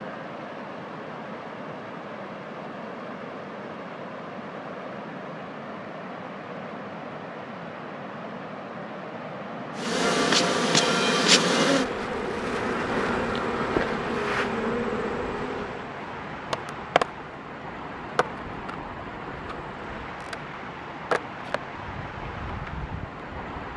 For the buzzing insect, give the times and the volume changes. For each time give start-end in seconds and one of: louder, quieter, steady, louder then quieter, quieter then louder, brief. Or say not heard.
9.8-23.6 quieter then louder.